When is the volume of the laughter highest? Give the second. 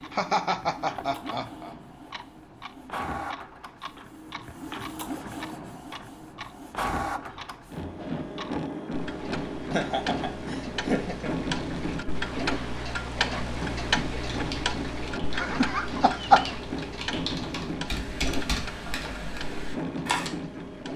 16 s.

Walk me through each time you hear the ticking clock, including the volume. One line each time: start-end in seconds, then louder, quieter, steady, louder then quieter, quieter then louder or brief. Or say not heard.
0.0-20.9 louder then quieter.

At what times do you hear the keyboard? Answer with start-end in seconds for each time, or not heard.
14.2-20.3.